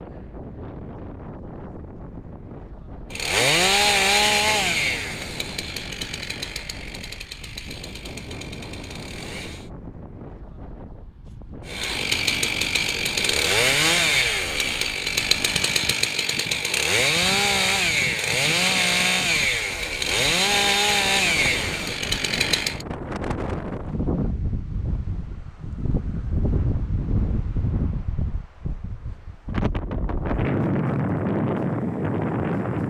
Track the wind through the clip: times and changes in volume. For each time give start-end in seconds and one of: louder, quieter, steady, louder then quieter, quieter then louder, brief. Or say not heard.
0.0-32.8 louder.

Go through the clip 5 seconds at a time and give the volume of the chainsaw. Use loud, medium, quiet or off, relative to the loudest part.
loud, quiet, loud, loud, loud, off, off.